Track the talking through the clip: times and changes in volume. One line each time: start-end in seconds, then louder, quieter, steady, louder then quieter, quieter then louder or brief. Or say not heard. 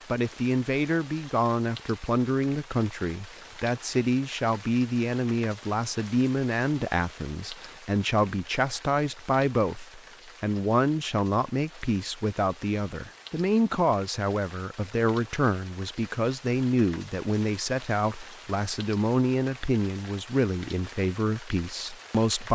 0.1-22.5 steady.